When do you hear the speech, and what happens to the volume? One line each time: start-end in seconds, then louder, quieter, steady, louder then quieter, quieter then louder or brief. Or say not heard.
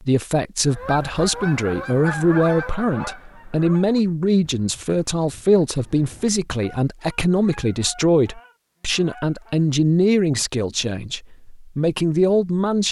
0.0-12.8 steady.